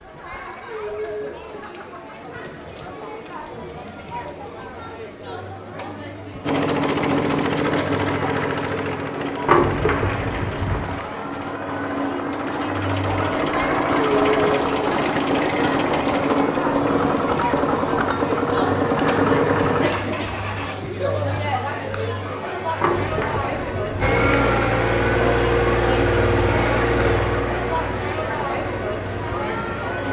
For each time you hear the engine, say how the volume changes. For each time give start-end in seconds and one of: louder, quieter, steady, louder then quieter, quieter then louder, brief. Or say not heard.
6.4-20.8 quieter then louder
24.0-30.0 quieter.